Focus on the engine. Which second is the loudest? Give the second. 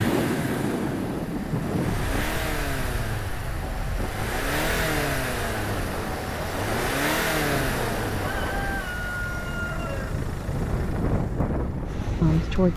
7 s.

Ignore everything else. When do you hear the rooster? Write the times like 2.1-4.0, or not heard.
8.2-10.2.